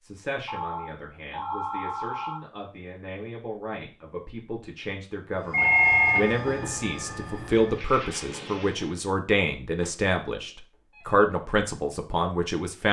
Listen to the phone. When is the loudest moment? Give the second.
6 s.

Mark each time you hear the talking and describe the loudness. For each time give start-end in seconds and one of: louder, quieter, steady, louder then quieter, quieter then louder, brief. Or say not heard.
0.0-12.8 louder.